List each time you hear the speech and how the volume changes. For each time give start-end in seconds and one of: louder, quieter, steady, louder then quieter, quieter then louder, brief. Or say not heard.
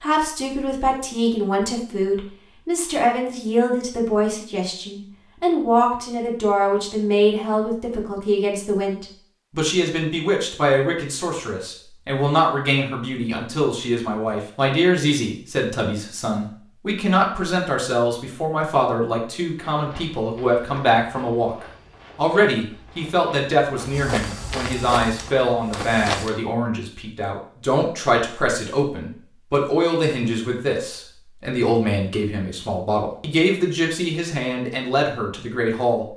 0.0-36.1 steady.